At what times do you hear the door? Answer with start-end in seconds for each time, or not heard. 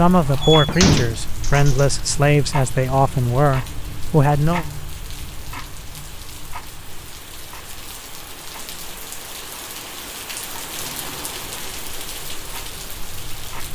0.4-1.9.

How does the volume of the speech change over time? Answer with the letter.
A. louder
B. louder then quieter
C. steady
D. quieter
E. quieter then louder
C.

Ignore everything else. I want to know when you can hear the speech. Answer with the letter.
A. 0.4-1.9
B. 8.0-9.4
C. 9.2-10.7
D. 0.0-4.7
D.